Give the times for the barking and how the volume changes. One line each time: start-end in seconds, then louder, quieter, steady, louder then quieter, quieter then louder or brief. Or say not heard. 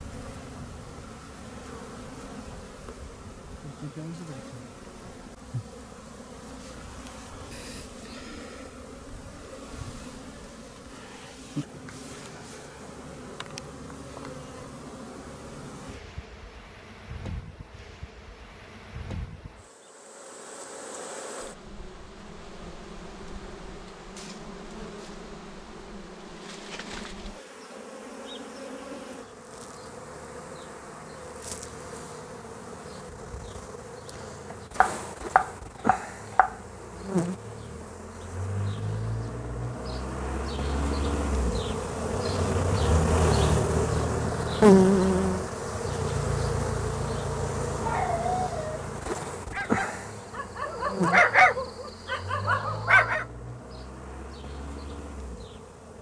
47.6-53.2 louder then quieter.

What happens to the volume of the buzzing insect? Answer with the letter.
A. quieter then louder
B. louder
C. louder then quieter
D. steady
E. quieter
B.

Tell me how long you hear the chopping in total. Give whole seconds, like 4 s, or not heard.
2 s.